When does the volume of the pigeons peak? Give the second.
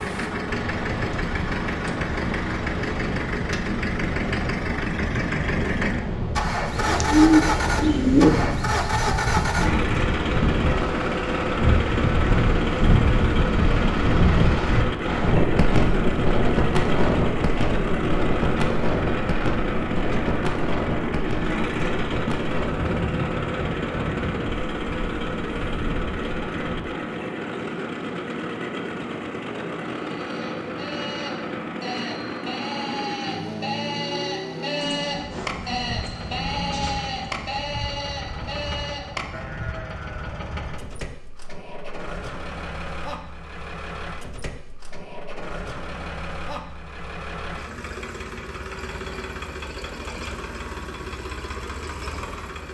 7 s.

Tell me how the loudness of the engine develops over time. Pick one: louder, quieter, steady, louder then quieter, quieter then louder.
quieter.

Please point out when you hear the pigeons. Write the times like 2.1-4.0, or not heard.
6.8-8.3, 34.8-37.6.